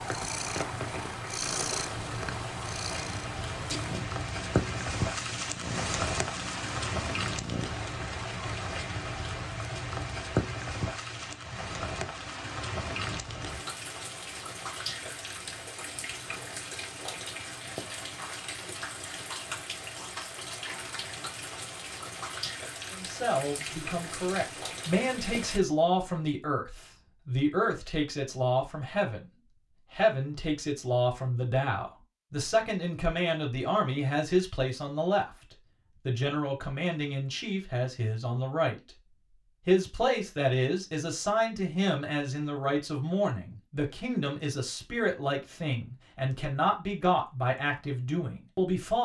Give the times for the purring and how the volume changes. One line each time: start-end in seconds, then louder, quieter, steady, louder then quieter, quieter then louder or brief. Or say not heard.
0.0-7.8 quieter.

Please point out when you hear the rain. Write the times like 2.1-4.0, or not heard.
0.0-25.6.